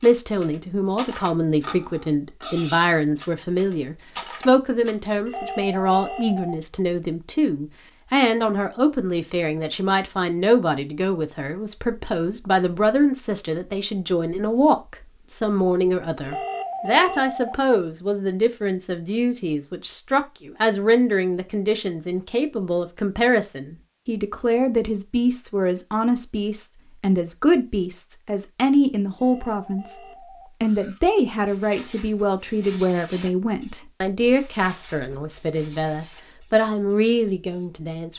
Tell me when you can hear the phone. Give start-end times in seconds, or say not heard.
5.0-6.6, 16.0-17.6, 28.9-30.5.